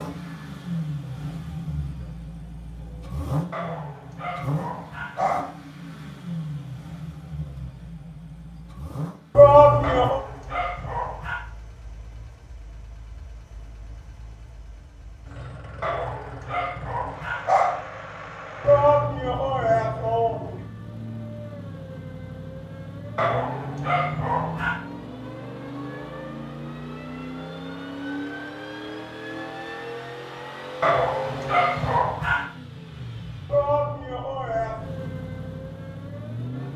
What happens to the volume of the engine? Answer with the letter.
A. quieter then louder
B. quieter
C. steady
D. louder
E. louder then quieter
A.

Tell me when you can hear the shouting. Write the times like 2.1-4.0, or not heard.
9.3-10.2, 18.6-20.6, 33.5-34.9.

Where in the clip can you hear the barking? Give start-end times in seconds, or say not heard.
3.5-5.5, 9.8-11.4, 15.8-17.9, 23.1-24.8, 30.8-32.5.